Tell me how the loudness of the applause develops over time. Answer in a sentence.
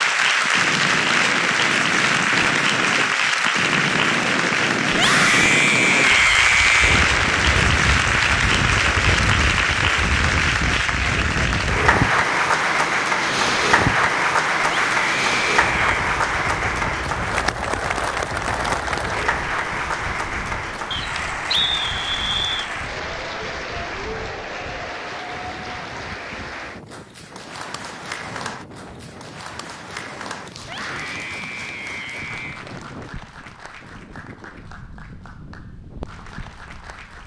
The loudness of the applause goes down.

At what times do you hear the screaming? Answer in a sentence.
You can hear the screaming from 4.9 to 7.0 s, from 14.7 to 16.1 s and from 30.6 to 32.6 s.